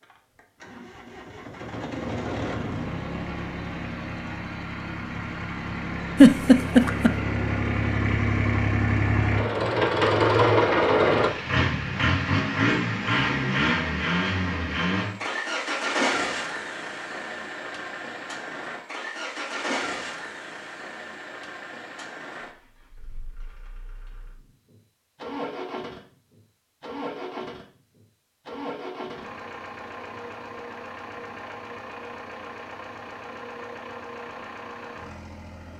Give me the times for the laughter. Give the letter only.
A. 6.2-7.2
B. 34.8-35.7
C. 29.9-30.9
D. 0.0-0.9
A.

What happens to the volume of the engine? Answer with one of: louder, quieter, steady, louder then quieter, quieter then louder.
louder then quieter.